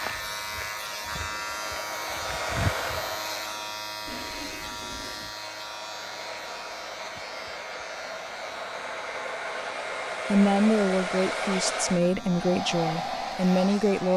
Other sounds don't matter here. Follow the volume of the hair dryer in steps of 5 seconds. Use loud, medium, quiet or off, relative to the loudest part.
medium, medium, loud.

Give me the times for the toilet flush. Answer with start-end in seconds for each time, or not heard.
4.0-5.3.